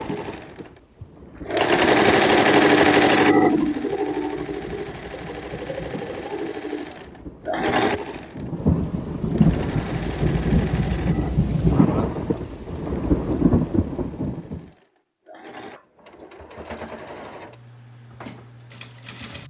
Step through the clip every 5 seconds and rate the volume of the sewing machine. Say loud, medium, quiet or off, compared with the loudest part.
loud, medium, quiet, quiet.